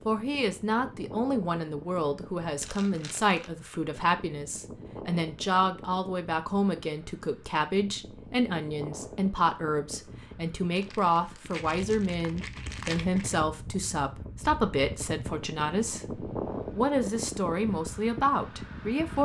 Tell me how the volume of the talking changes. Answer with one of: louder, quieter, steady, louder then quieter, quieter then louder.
steady.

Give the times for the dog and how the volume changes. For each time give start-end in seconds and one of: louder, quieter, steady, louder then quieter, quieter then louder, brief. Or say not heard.
not heard.